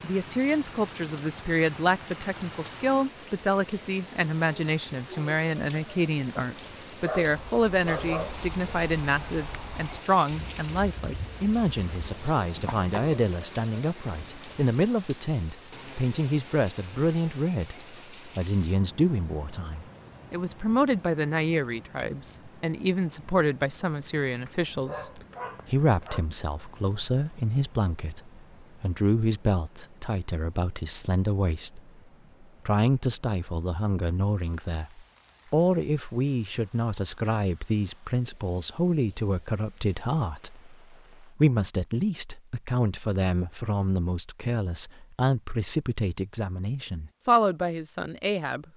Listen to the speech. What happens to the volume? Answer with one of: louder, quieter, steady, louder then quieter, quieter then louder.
steady.